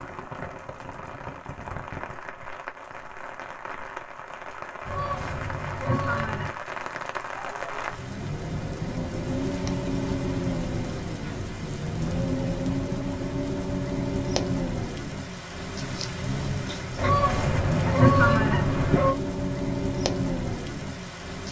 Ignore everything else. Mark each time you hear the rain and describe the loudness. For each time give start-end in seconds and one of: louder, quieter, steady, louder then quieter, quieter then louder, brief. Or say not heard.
0.0-21.4 louder.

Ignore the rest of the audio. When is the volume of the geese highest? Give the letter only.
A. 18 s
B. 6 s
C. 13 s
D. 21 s
A.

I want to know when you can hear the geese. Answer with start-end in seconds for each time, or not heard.
4.8-6.5, 16.9-19.1.